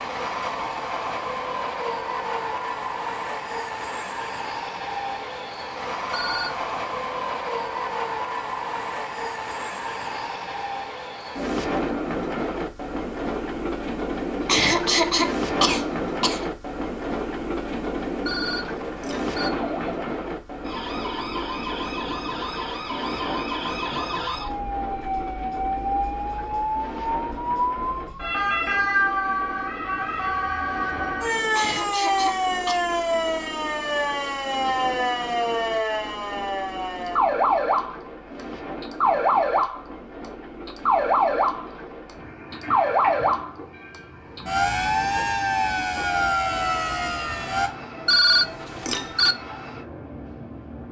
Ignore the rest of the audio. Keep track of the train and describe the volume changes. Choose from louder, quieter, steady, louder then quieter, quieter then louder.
quieter.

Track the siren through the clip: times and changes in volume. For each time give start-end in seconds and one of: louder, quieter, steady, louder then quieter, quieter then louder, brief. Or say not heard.
19.5-47.7 louder.